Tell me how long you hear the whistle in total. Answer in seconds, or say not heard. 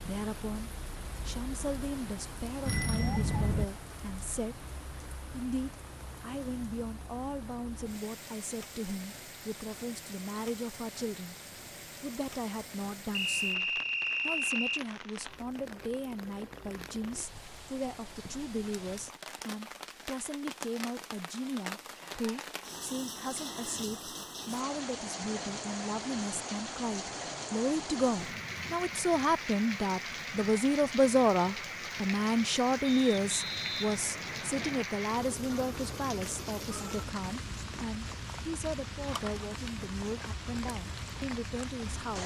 4 s.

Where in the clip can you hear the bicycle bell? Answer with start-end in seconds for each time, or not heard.
2.6-3.6.